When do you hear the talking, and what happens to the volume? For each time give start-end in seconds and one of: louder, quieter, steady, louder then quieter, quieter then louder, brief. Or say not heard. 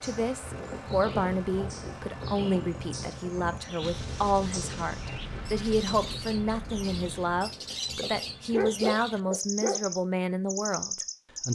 0.0-11.5 steady.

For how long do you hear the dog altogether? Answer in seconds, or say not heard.
2 s.